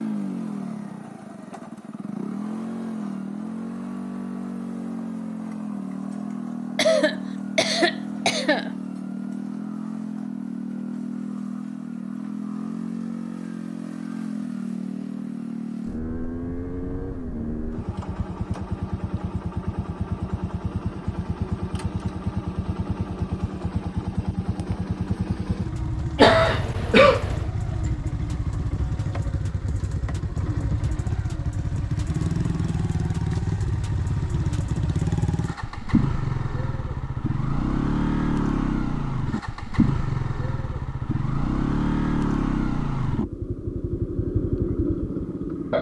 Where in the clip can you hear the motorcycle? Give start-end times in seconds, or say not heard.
0.0-45.7.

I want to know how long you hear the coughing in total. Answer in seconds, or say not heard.
3 s.